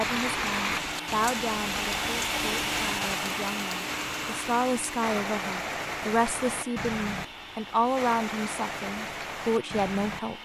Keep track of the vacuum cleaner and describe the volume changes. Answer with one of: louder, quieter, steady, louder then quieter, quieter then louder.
quieter.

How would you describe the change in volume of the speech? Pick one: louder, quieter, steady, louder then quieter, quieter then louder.
quieter then louder.